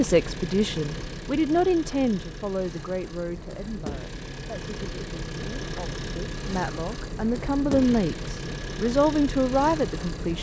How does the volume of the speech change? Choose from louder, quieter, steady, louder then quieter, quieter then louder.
quieter then louder.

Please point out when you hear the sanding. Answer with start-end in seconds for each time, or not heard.
not heard.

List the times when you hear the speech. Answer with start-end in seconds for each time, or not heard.
0.0-10.3.